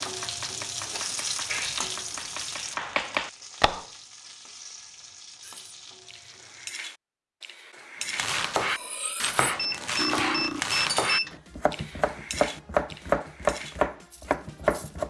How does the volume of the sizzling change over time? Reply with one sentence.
The volume of the sizzling goes down.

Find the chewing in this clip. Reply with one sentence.
The chewing can't be heard in this clip.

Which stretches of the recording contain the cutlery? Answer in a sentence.
The cutlery can be heard from 5.4 to 14.9 s.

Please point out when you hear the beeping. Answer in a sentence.
The beeping can be heard from 9.6 to 11.4 s.